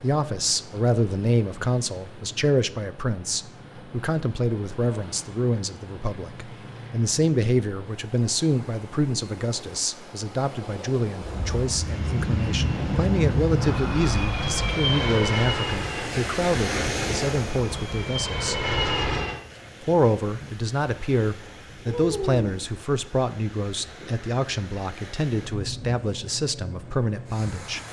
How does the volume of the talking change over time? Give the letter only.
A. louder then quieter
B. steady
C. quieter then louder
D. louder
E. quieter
B.